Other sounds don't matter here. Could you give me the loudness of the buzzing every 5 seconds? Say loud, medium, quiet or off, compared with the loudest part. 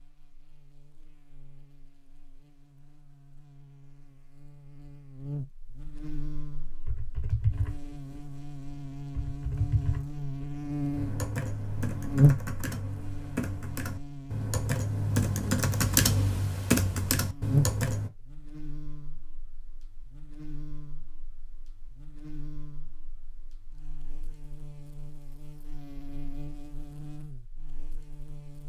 quiet, medium, loud, loud, quiet, quiet.